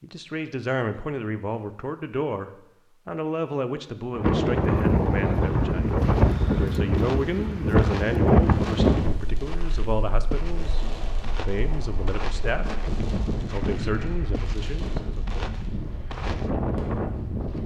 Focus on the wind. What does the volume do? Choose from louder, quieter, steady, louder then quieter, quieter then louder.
quieter then louder.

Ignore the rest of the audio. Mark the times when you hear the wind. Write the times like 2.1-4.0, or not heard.
4.2-17.6.